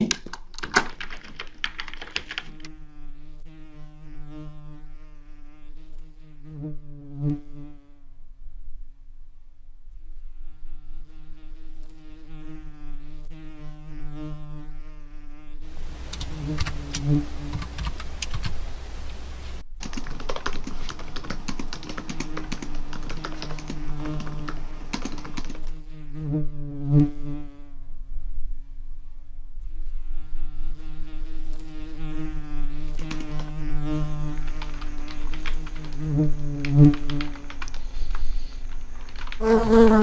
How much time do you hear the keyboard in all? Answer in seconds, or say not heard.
20 s.